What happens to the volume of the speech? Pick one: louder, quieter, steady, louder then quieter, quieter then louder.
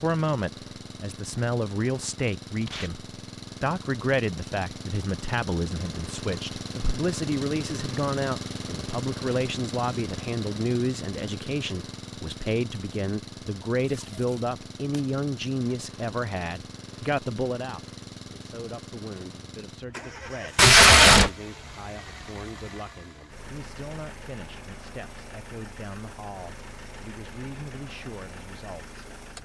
quieter.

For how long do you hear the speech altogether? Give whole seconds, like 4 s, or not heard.
29 s.